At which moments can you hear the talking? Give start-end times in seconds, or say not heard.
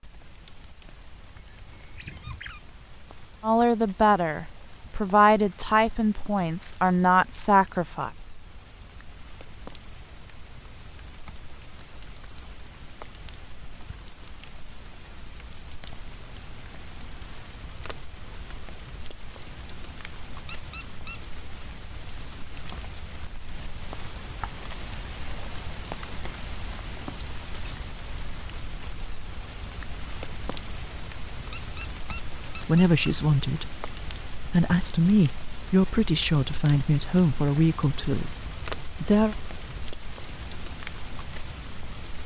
3.4-8.1, 32.5-39.4.